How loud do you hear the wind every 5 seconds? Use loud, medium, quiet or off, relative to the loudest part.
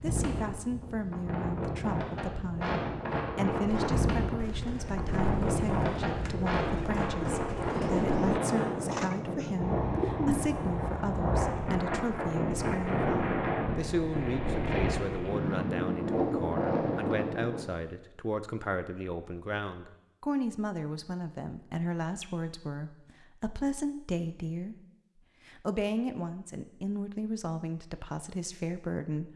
loud, loud, loud, loud, off, off.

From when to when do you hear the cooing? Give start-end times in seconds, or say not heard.
3.6-10.4.